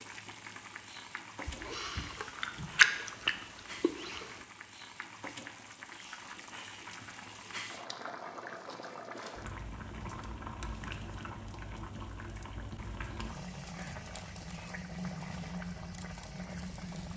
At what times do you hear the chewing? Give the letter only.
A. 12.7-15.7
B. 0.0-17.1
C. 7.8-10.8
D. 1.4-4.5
D.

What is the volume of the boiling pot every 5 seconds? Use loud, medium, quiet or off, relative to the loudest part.
medium, loud, loud, loud.